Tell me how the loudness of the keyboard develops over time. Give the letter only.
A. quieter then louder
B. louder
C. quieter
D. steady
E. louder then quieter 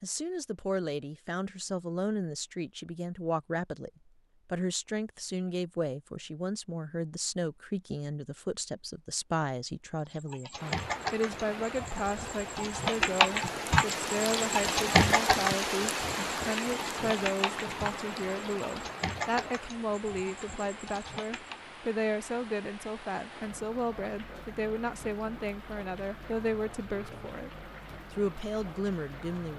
E.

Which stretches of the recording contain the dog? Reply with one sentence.
The dog can't be heard in this clip.